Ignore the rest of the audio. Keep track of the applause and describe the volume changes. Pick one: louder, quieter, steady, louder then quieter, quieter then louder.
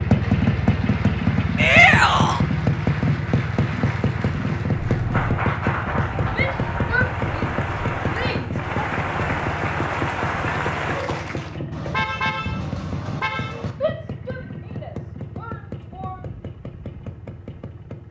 louder.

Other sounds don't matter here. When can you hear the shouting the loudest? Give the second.
2 s.